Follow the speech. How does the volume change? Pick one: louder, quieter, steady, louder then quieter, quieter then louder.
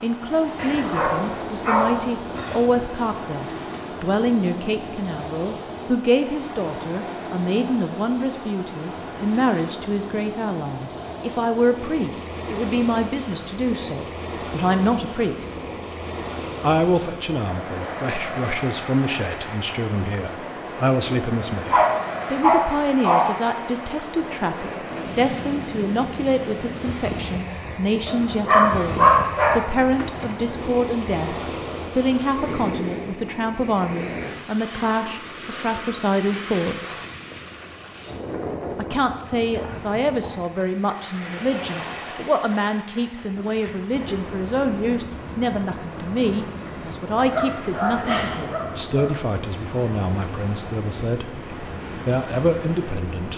steady.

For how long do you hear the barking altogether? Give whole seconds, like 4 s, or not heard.
8 s.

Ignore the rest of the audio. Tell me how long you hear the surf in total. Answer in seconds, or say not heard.
53 s.